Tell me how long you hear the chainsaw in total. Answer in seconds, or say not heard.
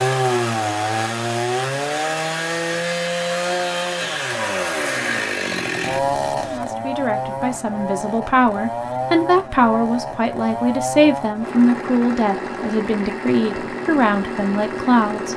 15 s.